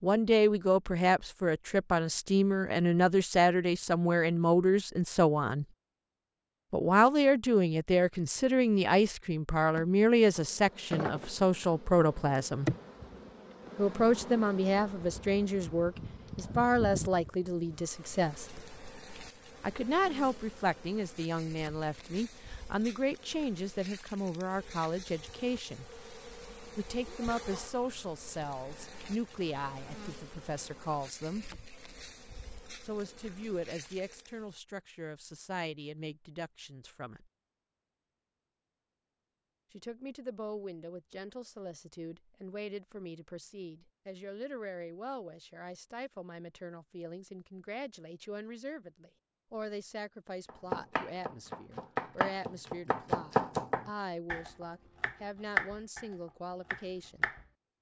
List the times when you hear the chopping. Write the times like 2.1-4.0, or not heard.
50.5-56.0, 56.7-57.5.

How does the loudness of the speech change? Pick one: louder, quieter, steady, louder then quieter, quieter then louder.
quieter.